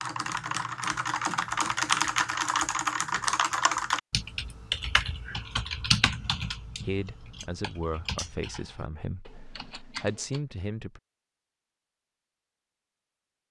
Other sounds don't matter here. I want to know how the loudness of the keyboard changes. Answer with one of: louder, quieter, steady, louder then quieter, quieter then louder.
quieter.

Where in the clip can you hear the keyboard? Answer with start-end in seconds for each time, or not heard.
0.0-10.4.